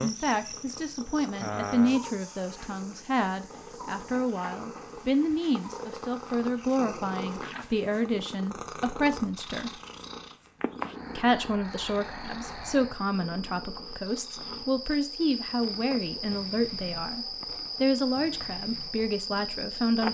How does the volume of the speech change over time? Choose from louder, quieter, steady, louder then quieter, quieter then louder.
steady.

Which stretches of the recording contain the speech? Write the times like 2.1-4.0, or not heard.
0.0-9.7, 11.2-20.1.